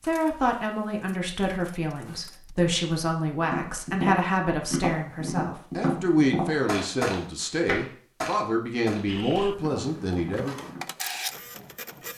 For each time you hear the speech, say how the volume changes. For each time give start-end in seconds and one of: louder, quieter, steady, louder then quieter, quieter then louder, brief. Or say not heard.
0.0-10.6 steady.